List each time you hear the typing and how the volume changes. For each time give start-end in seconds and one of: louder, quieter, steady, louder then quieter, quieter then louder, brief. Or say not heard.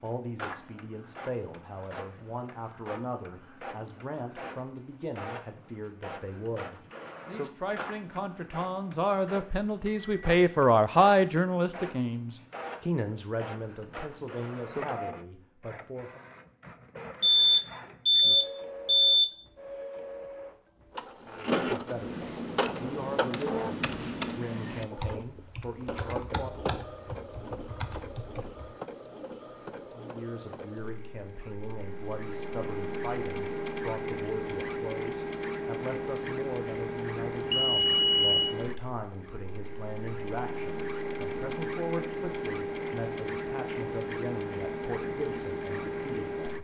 21.8-28.6 louder then quieter.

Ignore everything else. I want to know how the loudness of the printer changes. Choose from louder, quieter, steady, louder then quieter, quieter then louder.
louder.